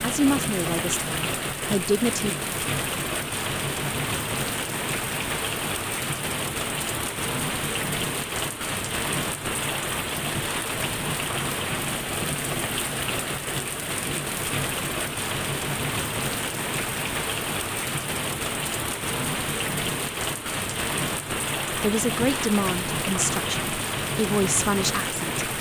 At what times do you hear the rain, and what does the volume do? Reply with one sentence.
You can hear the rain from 0.0 to 25.5 s, at a steady volume.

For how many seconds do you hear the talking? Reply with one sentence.
The talking can be heard for 6 seconds in total.